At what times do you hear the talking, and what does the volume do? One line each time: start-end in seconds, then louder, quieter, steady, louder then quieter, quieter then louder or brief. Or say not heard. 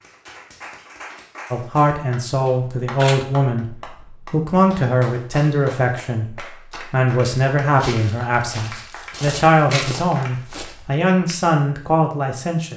1.5-12.7 steady.